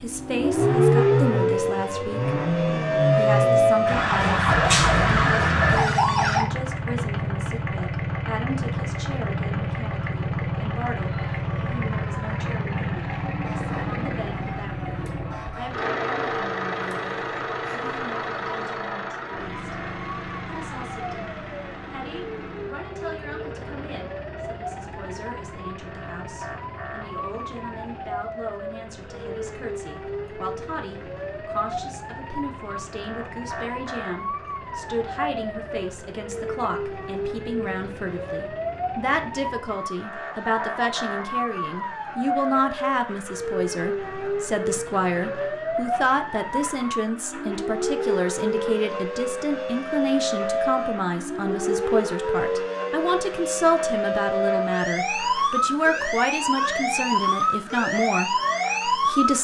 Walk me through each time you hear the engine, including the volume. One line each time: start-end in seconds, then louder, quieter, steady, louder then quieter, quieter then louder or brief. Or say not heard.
0.0-59.3 quieter.